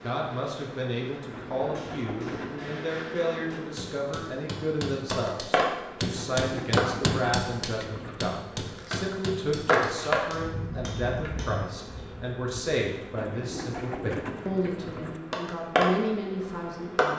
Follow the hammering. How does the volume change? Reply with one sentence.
The volume of the hammering goes up, then down.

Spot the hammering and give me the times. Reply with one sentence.
The hammering can be heard from 1.8 to 12.1 s.